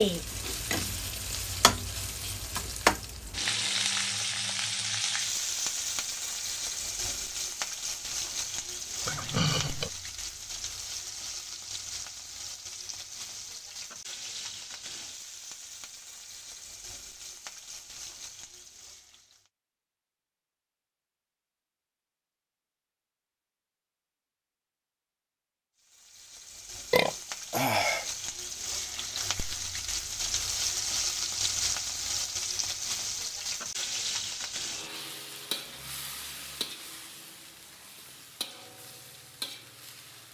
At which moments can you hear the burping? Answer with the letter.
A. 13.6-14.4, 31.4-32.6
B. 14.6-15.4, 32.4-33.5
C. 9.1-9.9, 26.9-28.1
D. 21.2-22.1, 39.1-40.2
C.